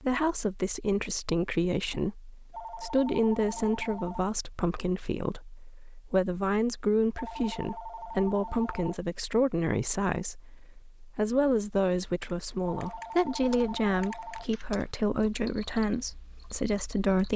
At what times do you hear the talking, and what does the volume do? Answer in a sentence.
The talking can be heard from 0.0 to 17.3 s, at a steady volume.